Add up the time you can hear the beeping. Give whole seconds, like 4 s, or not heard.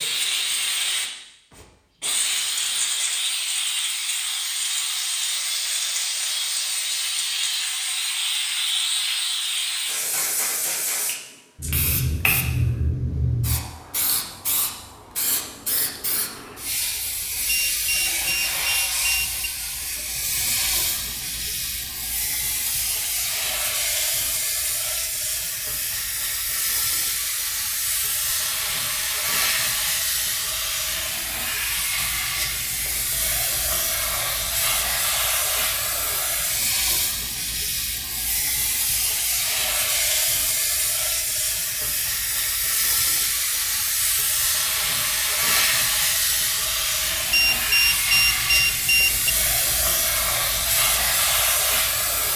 4 s.